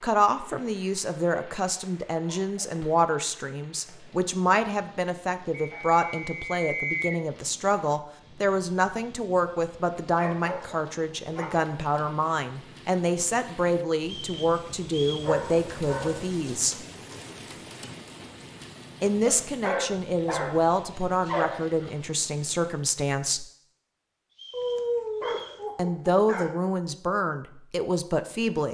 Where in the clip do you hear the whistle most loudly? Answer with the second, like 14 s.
7 s.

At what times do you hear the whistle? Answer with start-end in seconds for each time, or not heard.
5.5-7.2, 14.1-15.3, 24.4-25.6.